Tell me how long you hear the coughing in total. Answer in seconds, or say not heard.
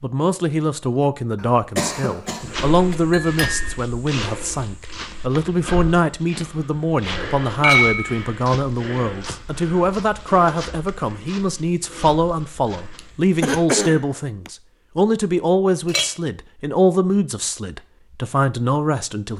3 s.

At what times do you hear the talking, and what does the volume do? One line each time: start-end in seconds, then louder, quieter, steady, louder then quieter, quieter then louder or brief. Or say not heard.
0.0-19.3 steady.